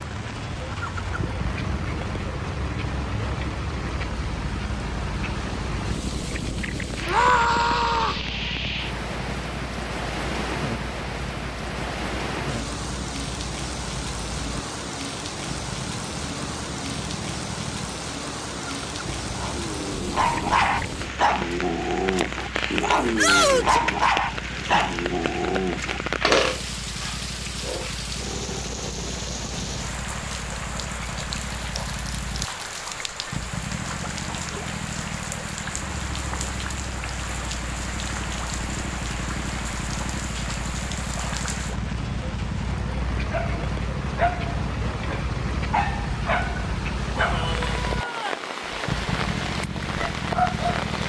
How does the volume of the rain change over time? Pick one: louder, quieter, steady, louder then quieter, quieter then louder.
steady.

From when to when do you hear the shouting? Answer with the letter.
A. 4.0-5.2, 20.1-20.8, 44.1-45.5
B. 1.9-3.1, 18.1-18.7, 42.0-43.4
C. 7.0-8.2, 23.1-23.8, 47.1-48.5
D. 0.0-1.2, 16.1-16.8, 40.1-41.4
C.